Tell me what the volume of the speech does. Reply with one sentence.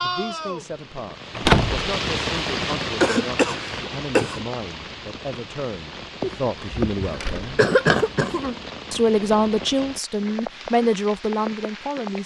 The loudness of the speech goes up.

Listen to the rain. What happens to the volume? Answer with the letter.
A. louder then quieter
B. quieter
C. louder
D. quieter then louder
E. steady
B.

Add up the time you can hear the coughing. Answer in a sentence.
You can hear the coughing for 4 seconds altogether.